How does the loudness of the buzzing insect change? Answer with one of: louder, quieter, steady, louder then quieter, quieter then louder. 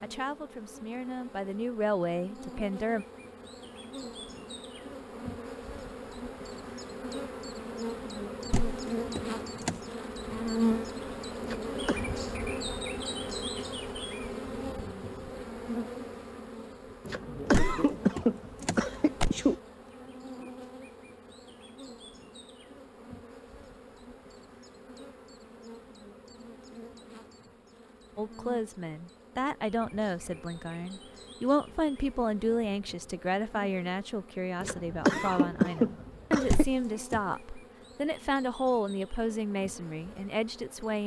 louder then quieter.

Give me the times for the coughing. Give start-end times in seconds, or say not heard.
11.4-12.1, 17.1-19.6, 34.6-36.6.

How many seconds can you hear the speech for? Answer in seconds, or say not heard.
16 s.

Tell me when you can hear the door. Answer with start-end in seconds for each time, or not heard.
8.4-9.8, 17.4-19.3, 36.4-37.2.